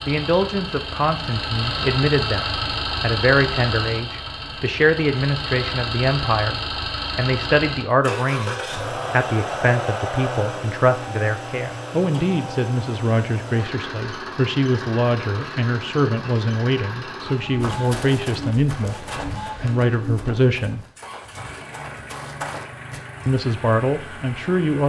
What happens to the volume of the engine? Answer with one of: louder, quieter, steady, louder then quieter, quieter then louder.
quieter.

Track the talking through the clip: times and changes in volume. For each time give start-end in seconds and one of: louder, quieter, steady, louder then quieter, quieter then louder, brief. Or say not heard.
0.1-20.9 steady
23.2-24.8 brief.